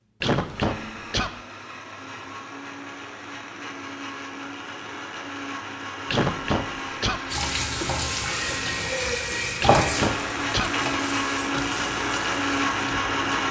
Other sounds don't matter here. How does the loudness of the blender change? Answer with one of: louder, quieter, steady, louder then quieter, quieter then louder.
louder.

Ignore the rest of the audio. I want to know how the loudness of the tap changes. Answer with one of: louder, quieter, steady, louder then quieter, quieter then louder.
quieter.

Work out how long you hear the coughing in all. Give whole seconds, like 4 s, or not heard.
3 s.